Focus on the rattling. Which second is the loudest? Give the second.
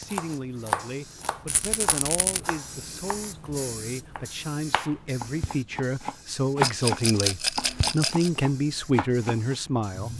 7 s.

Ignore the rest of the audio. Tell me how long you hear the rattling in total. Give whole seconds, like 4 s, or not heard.
3 s.